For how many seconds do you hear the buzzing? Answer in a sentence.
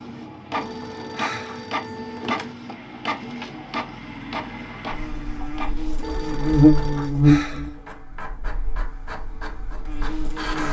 You can hear the buzzing for 6 seconds altogether.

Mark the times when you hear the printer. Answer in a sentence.
You can hear the printer from 0.0 to 10.6 s.